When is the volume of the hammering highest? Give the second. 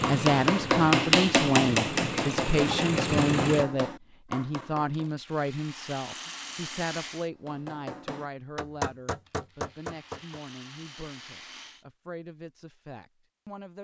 1 s.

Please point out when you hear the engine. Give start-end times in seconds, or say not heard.
0.0-3.6.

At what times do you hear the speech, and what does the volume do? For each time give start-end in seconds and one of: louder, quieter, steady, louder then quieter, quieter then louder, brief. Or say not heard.
0.1-13.8 quieter.